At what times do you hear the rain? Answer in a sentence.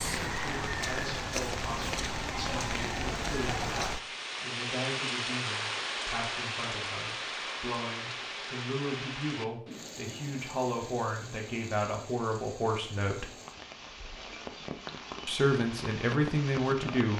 You can hear the rain from 0.0 to 17.1 s.